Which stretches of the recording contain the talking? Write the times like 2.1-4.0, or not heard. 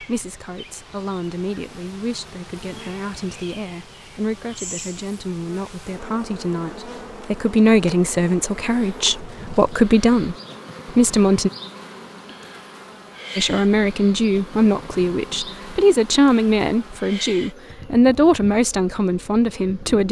0.0-10.3, 10.9-11.5, 13.3-20.0.